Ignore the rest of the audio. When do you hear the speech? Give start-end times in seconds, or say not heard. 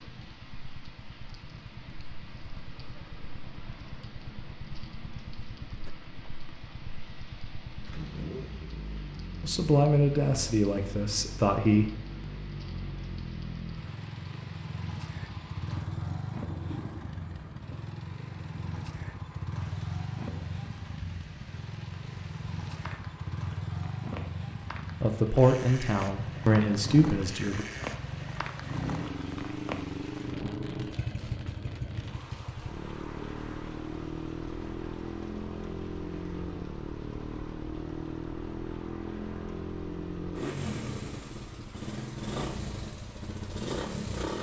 9.4-11.9, 25.0-27.6.